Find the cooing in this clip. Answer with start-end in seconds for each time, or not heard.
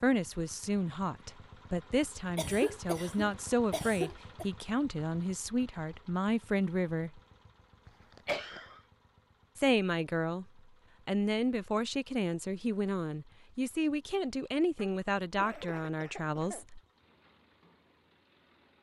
not heard.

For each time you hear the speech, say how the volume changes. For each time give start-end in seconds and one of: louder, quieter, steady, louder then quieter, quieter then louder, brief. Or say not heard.
0.0-7.2 steady
9.6-10.4 brief
11.1-16.8 steady.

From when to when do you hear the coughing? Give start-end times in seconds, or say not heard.
2.4-4.5, 7.8-8.8, 14.8-16.6.